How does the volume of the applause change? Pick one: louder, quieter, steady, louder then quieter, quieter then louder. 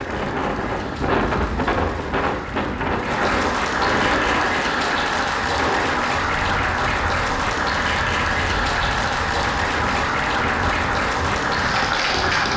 louder.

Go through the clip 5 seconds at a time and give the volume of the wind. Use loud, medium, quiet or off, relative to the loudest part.
loud, medium, medium.